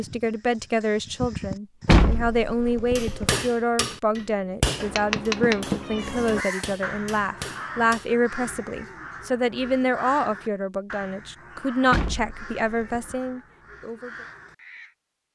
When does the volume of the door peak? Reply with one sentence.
The loudest moment of the door is at 2 seconds.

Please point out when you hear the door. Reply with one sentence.
You can hear the door from 1.9 to 3.4 s, from 5.2 to 5.8 s and from 11.9 to 13.2 s.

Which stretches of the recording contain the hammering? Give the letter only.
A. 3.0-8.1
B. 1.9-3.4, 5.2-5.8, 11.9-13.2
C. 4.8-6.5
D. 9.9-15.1
A.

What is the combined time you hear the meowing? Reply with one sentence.
The meowing can be heard for 2 seconds in total.